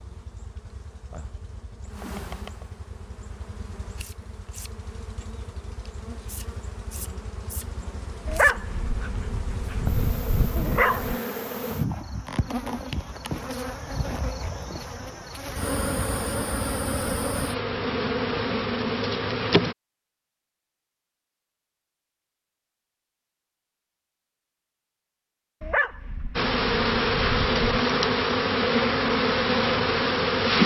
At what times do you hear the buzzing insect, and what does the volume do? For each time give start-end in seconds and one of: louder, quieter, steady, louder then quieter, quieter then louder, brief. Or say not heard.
0.0-19.8 louder
26.4-30.6 steady.